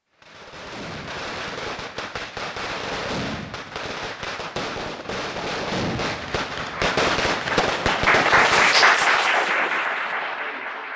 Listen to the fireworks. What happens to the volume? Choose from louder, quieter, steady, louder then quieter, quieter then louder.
louder.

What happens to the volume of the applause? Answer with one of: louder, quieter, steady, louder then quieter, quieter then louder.
louder then quieter.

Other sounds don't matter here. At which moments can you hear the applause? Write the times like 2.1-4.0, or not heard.
6.7-10.9.